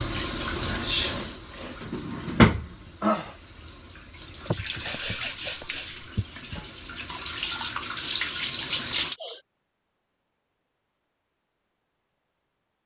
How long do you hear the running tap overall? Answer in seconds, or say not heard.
9 s.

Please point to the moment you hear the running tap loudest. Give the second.
3 s.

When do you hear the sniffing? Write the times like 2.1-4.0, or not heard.
0.9-1.9, 4.5-6.6, 8.8-9.4.